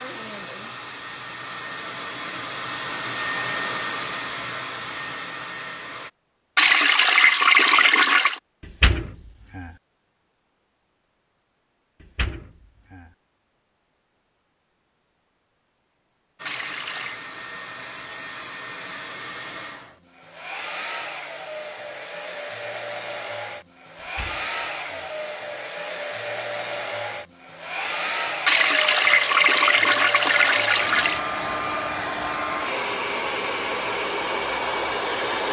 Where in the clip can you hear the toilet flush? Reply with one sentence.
The toilet flush can be heard from 6.5 to 8.4 s, from 16.4 to 17.2 s and from 28.4 to 31.2 s.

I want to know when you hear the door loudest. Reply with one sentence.
The volume of the door peaks at 9 seconds.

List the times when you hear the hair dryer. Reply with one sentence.
The hair dryer can be heard from 0.0 to 6.1 s and from 16.4 to 35.4 s.